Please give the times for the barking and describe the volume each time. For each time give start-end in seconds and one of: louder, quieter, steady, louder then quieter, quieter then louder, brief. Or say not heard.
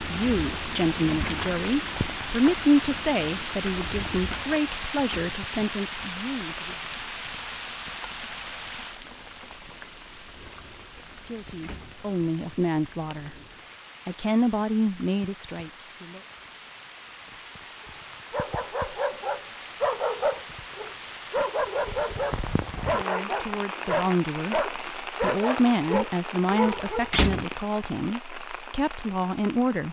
18.3-27.1 steady.